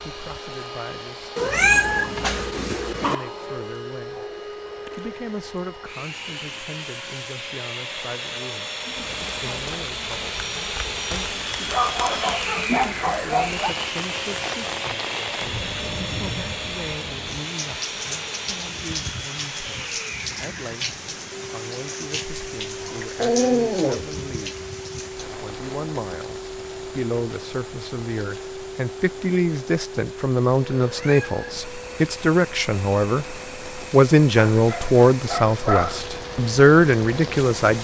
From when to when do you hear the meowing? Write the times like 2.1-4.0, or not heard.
1.4-3.1, 30.8-31.5.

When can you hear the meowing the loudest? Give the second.
2 s.